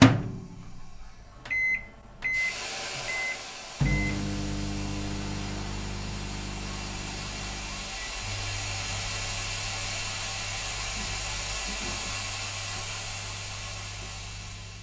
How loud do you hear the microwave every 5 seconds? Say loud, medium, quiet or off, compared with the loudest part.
loud, quiet, quiet.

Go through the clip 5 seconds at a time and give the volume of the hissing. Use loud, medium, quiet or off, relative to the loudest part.
medium, loud, loud.